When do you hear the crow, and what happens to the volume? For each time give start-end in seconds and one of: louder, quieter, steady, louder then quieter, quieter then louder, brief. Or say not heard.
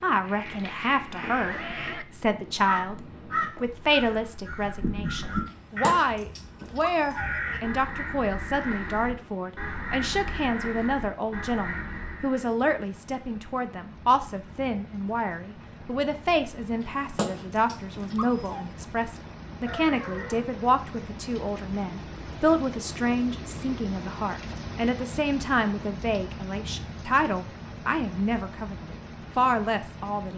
0.1-12.5 steady.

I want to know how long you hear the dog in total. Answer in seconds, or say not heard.
4 s.